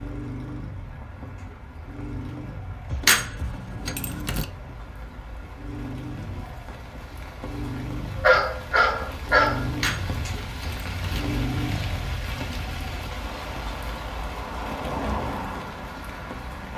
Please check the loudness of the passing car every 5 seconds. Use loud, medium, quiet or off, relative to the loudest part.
medium, loud, loud, loud.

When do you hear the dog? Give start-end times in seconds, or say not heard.
8.2-9.7.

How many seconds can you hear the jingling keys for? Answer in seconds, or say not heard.
3 s.